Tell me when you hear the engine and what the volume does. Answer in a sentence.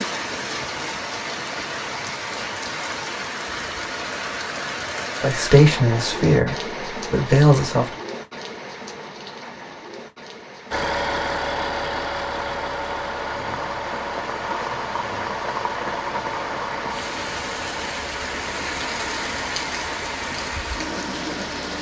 The engine can be heard from 10.7 to 21.7 s, getting quieter.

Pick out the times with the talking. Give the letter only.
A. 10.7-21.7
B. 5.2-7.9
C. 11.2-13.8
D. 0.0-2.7
B.